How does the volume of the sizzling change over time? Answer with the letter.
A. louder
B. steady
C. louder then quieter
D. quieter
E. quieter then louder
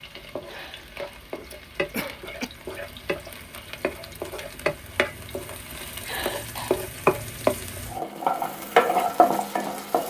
A.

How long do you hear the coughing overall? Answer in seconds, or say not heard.
3 s.